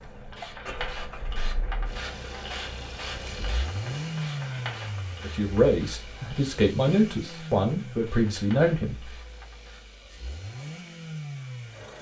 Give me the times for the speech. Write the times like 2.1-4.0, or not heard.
5.2-8.9.